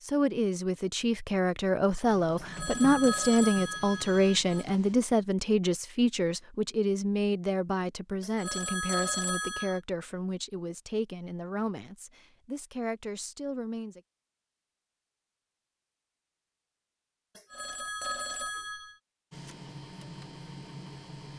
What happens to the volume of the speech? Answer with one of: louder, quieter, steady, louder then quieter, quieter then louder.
quieter.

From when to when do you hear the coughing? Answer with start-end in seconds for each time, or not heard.
not heard.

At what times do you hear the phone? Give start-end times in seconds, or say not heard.
2.4-4.7, 8.2-9.8, 17.4-18.9.